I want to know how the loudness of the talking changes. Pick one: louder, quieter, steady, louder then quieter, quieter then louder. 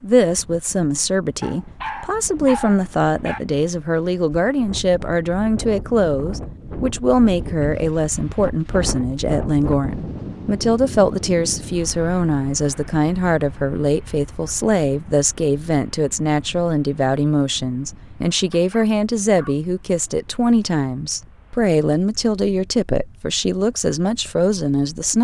steady.